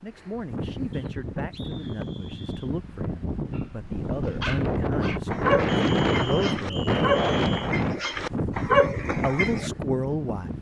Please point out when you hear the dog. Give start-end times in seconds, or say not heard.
4.0-9.7.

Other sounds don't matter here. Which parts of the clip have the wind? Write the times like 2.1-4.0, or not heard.
0.0-10.5.